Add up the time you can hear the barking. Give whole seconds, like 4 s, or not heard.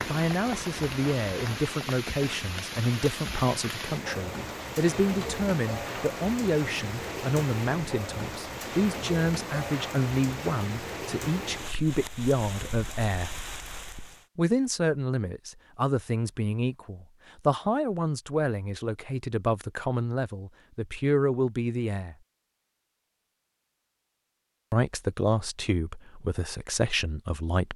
not heard.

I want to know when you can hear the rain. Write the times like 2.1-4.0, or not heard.
0.0-14.2.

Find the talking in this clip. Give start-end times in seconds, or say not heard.
0.1-13.4, 14.3-22.1, 24.7-27.7.